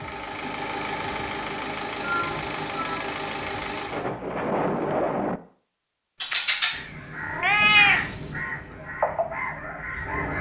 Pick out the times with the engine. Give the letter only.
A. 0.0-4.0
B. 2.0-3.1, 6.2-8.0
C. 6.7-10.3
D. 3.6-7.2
A.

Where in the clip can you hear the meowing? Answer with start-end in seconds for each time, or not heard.
2.0-3.1, 6.2-8.0.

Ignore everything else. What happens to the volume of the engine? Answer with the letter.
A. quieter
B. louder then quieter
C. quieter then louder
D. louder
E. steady
E.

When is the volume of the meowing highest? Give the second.
8 s.